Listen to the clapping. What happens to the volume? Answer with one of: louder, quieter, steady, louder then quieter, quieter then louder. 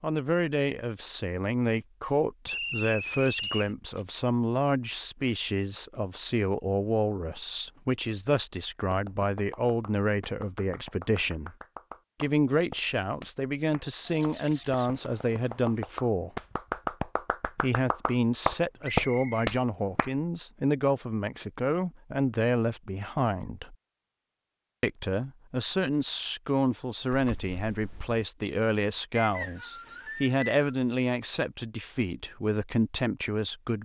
louder.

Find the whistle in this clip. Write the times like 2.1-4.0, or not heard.
2.5-3.8, 18.8-19.5, 29.1-30.8.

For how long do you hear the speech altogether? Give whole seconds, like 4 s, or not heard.
31 s.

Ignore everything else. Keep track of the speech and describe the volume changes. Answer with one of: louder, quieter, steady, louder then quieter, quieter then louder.
steady.